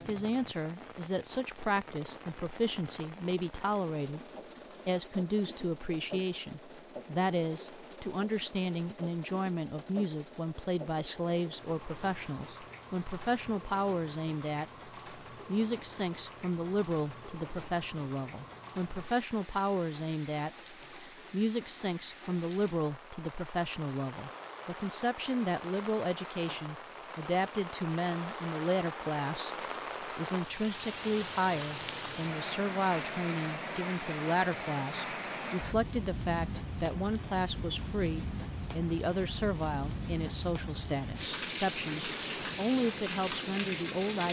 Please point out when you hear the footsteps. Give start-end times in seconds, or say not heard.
not heard.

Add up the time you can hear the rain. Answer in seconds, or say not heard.
44 s.